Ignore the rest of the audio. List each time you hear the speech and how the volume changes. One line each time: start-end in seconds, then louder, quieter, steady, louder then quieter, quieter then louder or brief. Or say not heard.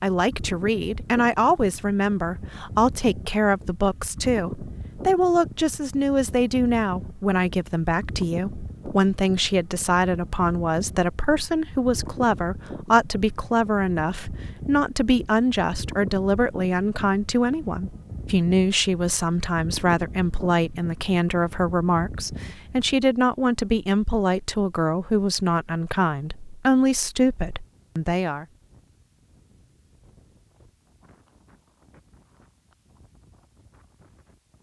0.0-28.4 steady.